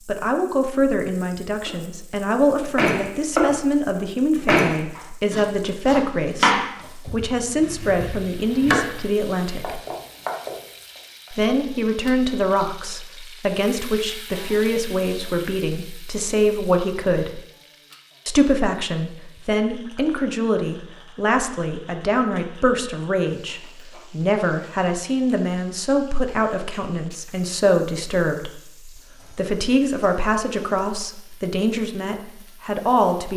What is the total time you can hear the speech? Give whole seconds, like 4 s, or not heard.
31 s.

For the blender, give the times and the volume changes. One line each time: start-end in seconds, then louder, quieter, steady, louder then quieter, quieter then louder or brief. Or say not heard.
not heard.